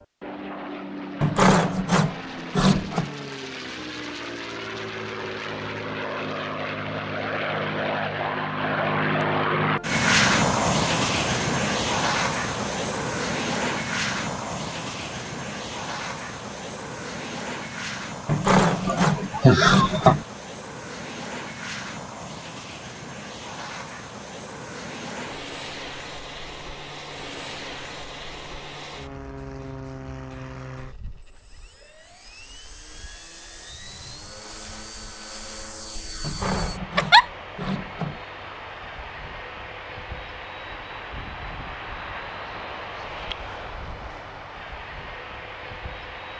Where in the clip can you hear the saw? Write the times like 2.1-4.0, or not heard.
1.2-3.1, 18.2-20.2, 36.2-38.2.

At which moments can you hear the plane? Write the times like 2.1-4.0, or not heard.
0.0-46.3.